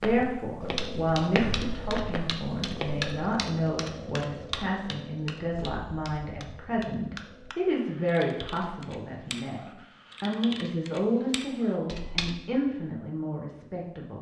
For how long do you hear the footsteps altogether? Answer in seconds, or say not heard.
3 s.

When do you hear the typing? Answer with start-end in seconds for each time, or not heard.
0.6-12.3.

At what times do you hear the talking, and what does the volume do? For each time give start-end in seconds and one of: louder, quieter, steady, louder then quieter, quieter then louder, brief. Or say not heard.
0.0-14.1 steady.